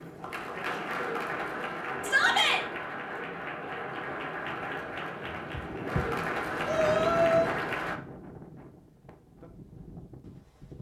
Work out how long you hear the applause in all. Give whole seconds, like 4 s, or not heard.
8 s.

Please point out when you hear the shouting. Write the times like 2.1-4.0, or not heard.
2.0-2.6, 6.7-7.5.